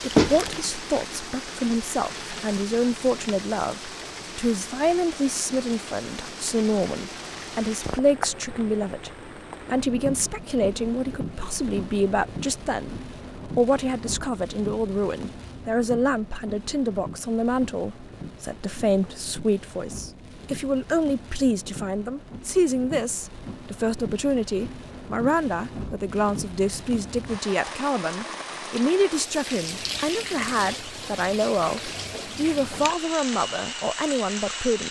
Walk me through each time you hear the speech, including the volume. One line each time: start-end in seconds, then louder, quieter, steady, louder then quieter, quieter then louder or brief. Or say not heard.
0.0-34.8 steady.